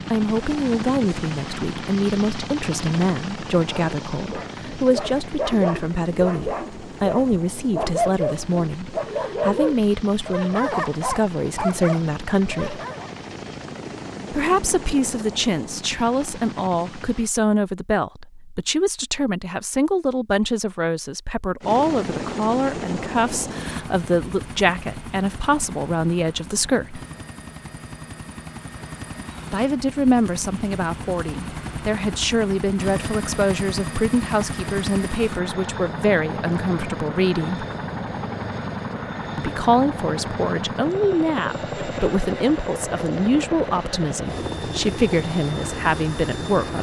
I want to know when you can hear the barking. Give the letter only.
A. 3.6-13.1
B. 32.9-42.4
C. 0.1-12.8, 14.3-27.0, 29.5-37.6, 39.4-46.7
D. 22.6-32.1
A.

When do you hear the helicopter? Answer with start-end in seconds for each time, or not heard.
0.0-17.3, 21.6-46.7.